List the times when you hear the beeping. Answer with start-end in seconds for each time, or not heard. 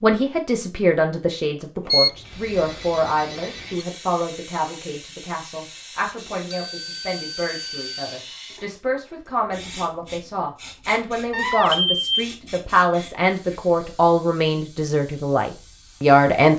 1.9-3.9, 6.5-8.2, 11.3-12.1.